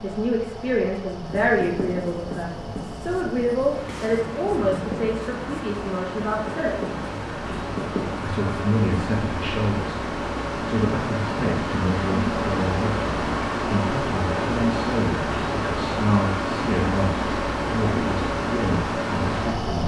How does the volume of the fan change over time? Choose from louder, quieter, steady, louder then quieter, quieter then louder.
louder.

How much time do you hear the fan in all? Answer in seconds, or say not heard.
20 s.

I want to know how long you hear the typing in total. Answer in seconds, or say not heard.
not heard.